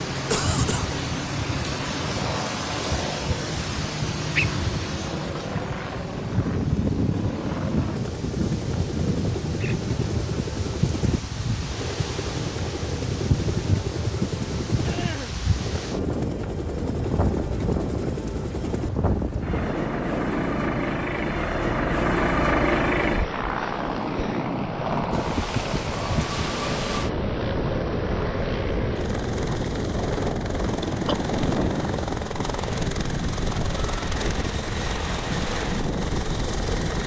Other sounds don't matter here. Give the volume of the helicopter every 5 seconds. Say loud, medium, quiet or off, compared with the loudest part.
medium, medium, medium, medium, loud, medium, medium, medium.